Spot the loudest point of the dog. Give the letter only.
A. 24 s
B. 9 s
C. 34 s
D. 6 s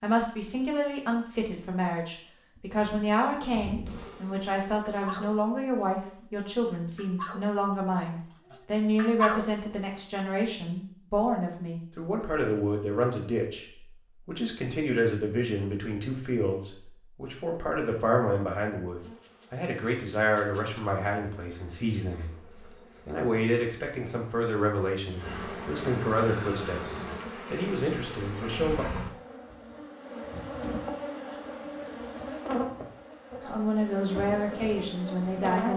B.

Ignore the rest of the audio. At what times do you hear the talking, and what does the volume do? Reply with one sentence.
You can hear the talking from 0.0 to 28.9 s, at a steady volume; and briefly from 33.4 to 35.7 s.